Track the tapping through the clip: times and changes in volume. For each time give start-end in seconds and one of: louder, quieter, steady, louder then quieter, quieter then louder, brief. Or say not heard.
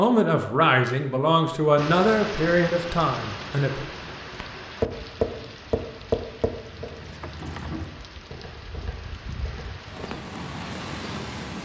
4.4-10.2 quieter.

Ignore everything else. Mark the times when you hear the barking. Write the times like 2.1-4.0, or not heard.
not heard.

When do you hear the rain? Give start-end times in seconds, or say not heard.
1.8-11.5.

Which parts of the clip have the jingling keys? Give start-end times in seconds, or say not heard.
6.7-8.1.